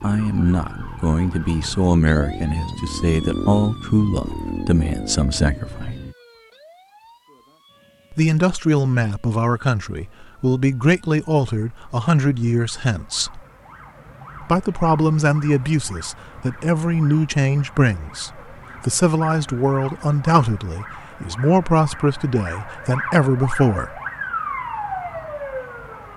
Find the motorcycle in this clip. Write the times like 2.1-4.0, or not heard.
0.0-6.2.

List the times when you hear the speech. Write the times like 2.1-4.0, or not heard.
0.0-6.0, 8.1-13.4, 14.4-23.9.